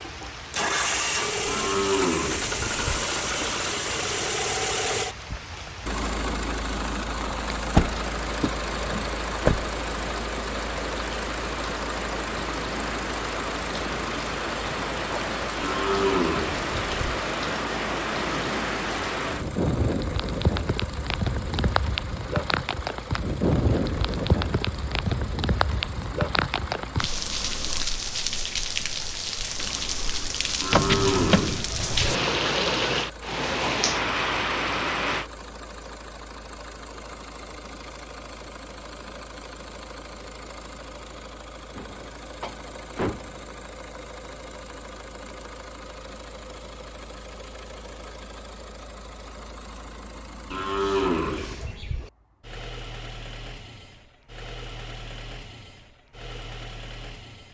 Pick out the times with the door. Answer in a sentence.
You can hear the door from 7.8 to 9.6 s, from 30.7 to 31.6 s and from 41.8 to 43.4 s.